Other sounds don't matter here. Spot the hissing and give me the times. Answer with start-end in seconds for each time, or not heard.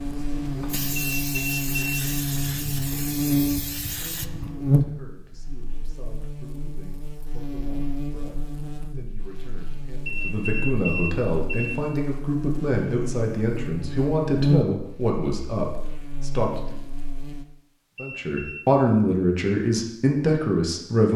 0.0-4.5.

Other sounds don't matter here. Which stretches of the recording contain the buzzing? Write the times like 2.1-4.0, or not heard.
0.0-17.4.